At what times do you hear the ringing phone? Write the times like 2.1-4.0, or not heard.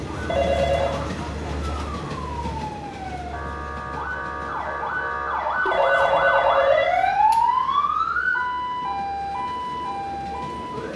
0.2-1.1, 5.7-7.5.